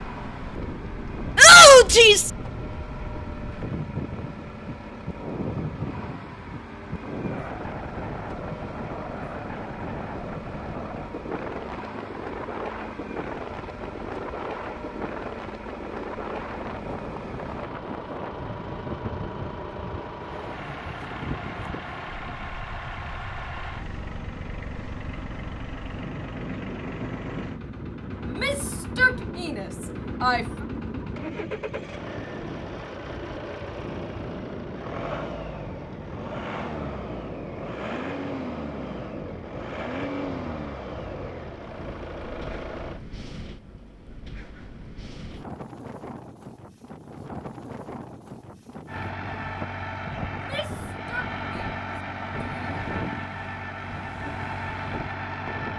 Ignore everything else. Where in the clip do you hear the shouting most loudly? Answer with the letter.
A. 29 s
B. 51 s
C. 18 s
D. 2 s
D.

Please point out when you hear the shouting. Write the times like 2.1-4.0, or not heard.
1.4-2.3, 28.2-30.4, 50.3-51.7, 52.3-52.9.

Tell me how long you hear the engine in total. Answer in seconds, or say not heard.
50 s.